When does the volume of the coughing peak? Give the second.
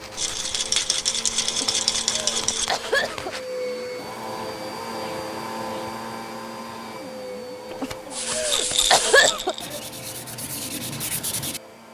9 s.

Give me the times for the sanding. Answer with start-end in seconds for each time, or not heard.
0.0-3.5, 8.1-11.6.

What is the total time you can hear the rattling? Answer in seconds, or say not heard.
4 s.